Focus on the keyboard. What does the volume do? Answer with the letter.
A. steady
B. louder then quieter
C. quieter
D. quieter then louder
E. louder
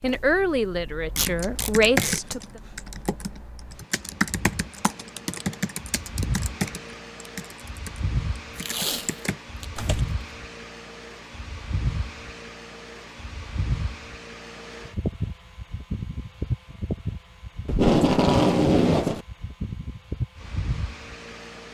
C.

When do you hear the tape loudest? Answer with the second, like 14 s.
18 s.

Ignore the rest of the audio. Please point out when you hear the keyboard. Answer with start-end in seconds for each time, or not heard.
1.2-10.0.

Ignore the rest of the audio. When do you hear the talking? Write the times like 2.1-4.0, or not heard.
0.0-2.6.